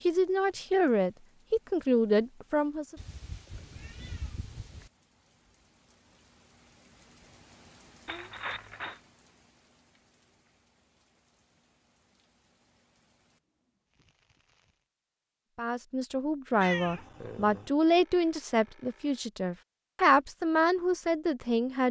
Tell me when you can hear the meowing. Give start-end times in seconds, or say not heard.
3.0-4.9, 8.1-9.0, 16.6-17.7.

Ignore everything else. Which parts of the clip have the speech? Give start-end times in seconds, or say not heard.
0.0-3.0, 15.6-21.8.